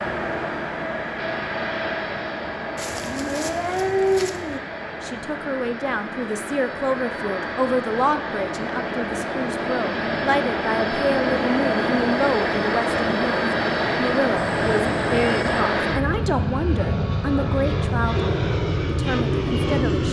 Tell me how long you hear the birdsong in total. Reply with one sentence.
You can't hear the birdsong here.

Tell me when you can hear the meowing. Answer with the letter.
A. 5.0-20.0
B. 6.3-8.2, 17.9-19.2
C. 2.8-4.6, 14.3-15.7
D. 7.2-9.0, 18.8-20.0
C.